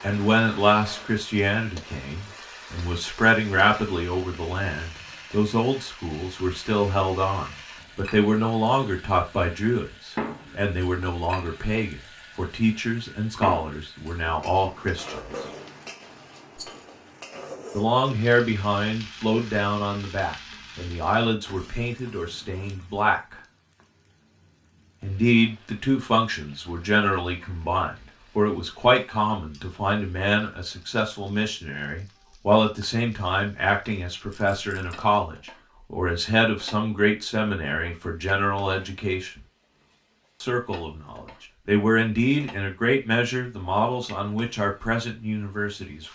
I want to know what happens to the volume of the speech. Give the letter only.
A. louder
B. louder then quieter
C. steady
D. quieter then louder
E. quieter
C.